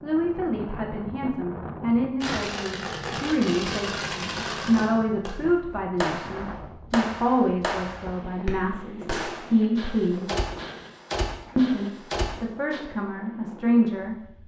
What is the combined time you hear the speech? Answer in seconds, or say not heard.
13 s.